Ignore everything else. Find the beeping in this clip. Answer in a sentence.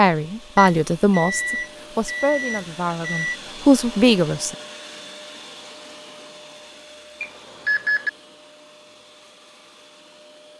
You can hear the beeping from 0.6 to 3.4 s and from 7.2 to 8.1 s.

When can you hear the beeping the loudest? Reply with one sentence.
The volume of the beeping peaks at 8 seconds.